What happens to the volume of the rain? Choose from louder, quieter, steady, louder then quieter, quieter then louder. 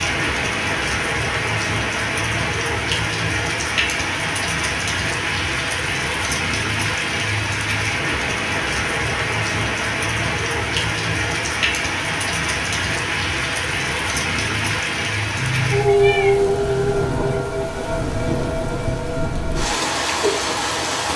steady.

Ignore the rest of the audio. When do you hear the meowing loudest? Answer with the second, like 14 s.
16 s.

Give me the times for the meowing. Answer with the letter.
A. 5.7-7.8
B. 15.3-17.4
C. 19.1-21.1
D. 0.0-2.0
B.